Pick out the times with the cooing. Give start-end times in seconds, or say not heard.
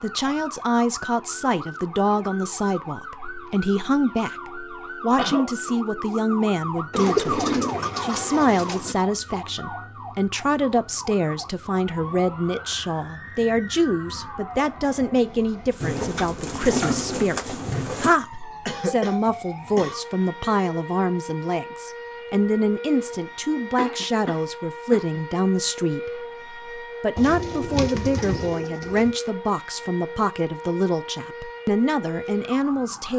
6.9-8.9, 15.8-18.1, 27.1-29.1.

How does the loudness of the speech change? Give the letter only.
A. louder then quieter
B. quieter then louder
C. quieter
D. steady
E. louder
D.